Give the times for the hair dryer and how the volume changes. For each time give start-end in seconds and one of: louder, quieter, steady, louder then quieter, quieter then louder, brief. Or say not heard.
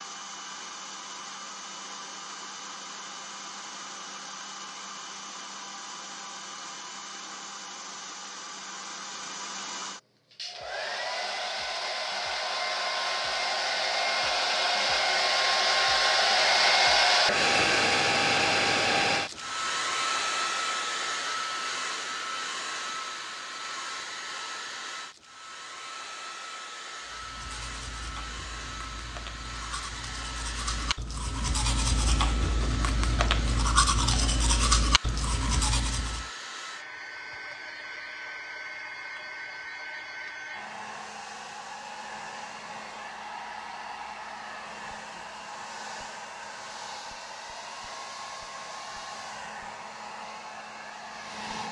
0.0-51.6 louder then quieter.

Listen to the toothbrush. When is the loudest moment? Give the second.
34 s.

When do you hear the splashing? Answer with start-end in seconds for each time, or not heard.
not heard.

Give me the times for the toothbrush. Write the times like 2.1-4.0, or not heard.
27.1-36.2.